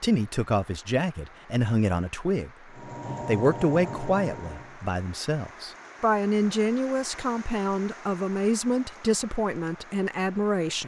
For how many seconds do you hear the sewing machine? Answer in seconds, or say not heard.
2 s.